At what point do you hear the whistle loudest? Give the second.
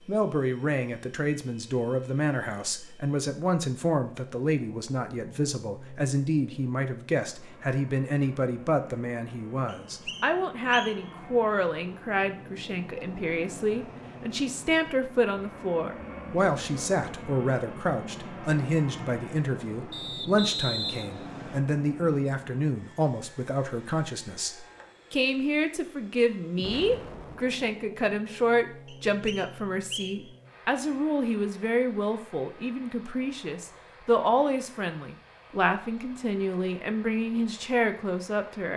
21 s.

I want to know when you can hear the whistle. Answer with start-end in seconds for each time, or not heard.
9.7-11.1, 19.9-21.6, 28.9-30.3.